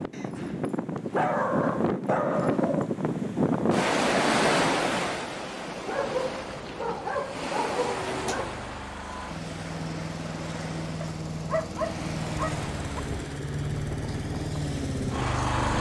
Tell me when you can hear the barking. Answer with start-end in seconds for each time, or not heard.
0.1-2.9, 5.8-8.6, 11.0-13.0.